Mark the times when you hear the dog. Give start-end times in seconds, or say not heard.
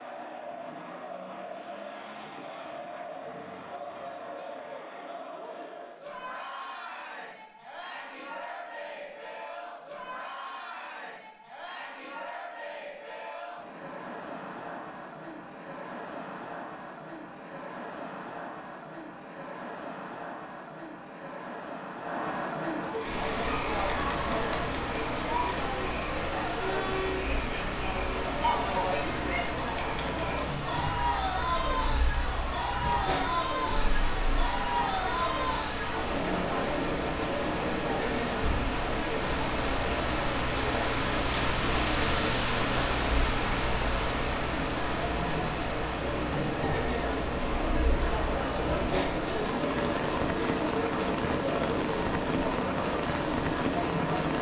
not heard.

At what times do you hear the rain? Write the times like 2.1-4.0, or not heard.
23.1-54.3.